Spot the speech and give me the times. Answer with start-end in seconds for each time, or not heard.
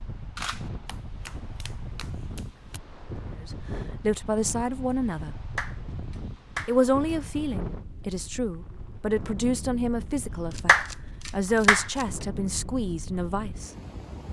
3.4-5.3, 6.7-13.7.